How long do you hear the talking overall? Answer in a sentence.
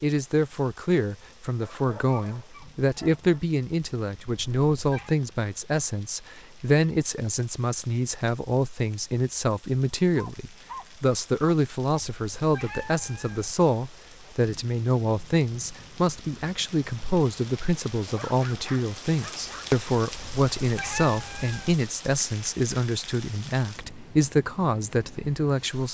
You can hear the talking for 26 seconds altogether.